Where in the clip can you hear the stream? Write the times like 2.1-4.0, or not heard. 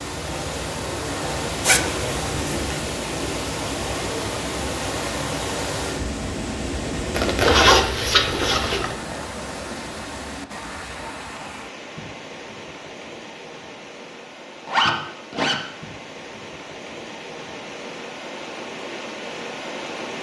0.0-20.1.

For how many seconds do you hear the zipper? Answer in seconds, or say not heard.
4 s.